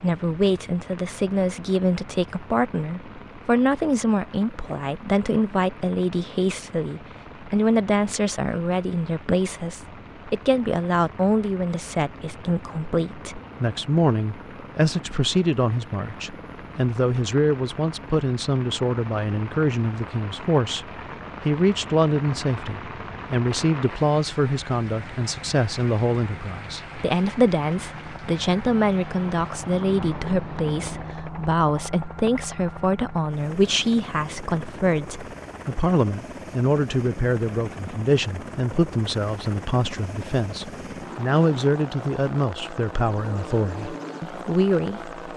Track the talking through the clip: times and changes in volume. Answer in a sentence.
You can hear the talking from 0.0 to 45.1 s, at a steady volume.